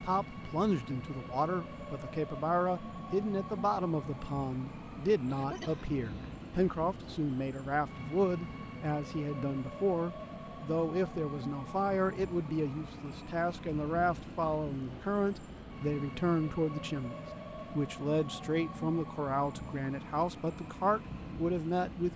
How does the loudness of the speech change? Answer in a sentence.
The volume of the speech stays about the same.